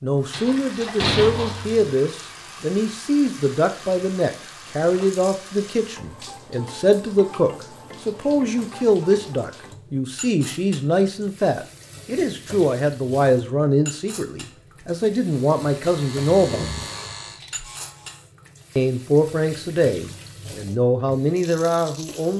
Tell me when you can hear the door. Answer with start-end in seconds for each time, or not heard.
0.3-1.9.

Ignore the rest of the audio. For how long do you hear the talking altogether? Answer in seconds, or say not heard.
20 s.